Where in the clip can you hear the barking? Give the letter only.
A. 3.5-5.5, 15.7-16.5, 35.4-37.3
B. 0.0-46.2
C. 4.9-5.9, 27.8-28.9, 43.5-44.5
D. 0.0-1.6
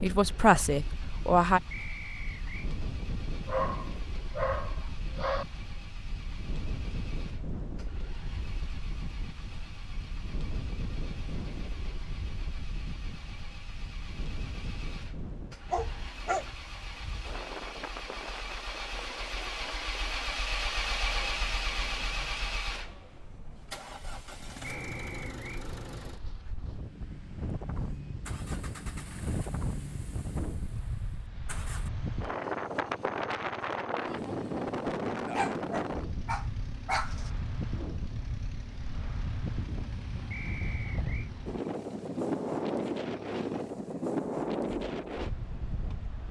A.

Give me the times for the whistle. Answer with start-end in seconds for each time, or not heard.
1.7-2.7, 24.6-25.6, 40.3-41.3.